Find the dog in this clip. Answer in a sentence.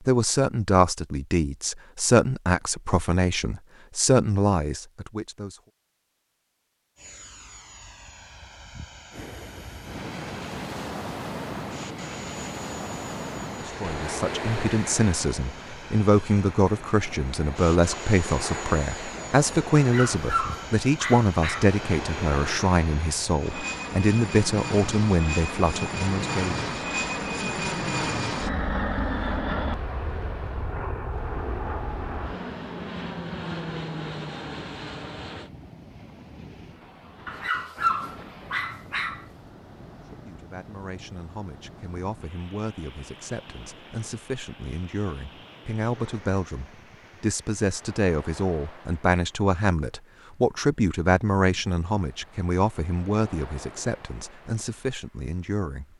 You can hear the dog from 19.8 to 21.8 s and from 37.2 to 39.2 s.